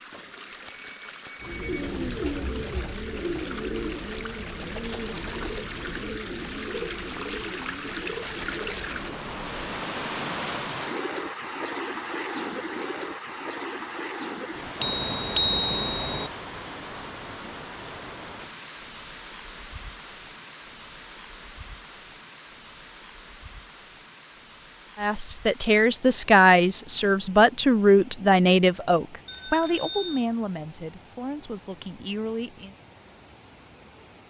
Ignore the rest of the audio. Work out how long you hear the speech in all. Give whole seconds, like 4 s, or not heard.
8 s.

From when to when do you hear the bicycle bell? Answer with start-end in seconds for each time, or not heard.
0.1-1.9, 14.8-16.3, 29.2-30.2.